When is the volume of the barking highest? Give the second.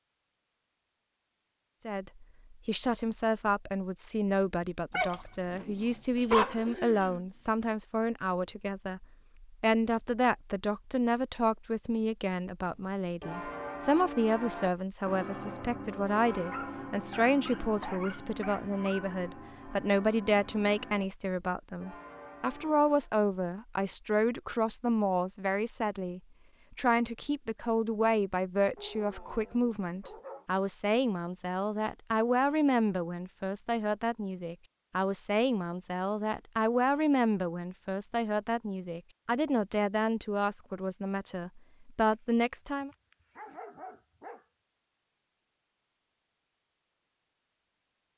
6 s.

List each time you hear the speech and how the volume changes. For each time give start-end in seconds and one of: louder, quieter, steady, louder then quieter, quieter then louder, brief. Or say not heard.
1.9-42.9 steady.